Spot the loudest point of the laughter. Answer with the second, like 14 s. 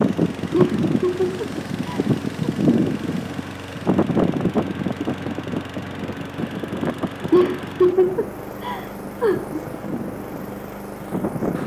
8 s.